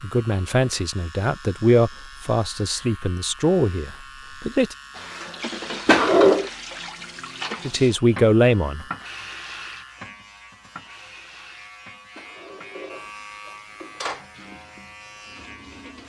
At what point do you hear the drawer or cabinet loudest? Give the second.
6 s.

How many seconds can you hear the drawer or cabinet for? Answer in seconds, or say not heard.
3 s.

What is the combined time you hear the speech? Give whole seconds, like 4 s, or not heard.
6 s.